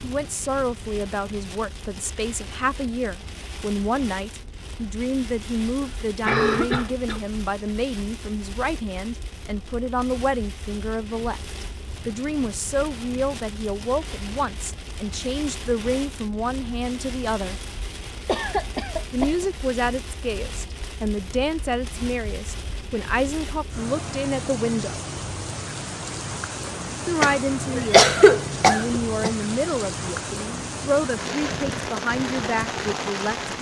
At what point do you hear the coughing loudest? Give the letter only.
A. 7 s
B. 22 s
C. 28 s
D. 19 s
C.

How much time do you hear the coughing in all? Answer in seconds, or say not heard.
4 s.